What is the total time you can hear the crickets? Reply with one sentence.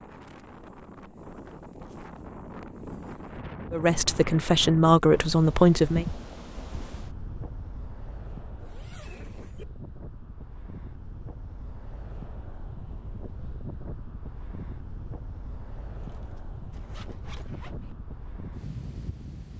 The crickets can't be heard in this clip.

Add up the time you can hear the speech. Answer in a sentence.
The speech can be heard for 2 seconds in total.